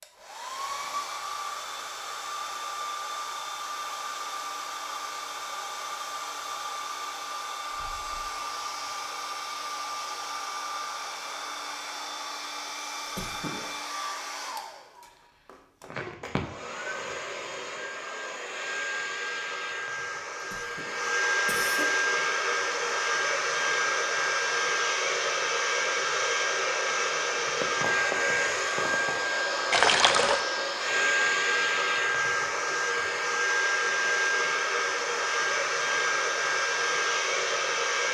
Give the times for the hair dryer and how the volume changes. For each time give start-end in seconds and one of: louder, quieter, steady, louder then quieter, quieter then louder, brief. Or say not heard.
0.0-38.0 louder.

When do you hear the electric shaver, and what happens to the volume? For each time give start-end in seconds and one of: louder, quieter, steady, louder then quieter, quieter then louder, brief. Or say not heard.
not heard.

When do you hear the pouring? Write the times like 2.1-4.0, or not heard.
29.7-30.4.